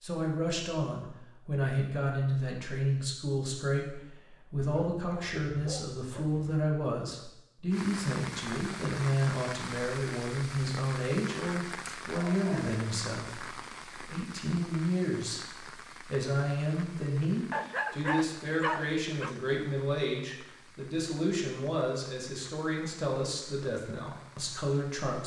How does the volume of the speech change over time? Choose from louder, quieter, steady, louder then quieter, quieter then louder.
steady.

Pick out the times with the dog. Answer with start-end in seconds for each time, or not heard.
4.5-6.5, 11.7-12.8, 17.5-19.4.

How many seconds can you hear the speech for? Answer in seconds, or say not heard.
25 s.